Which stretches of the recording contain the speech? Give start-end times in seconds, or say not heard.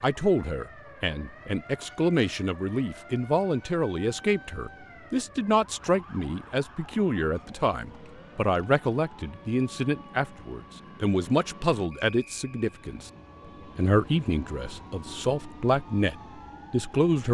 0.0-13.1, 13.8-17.3.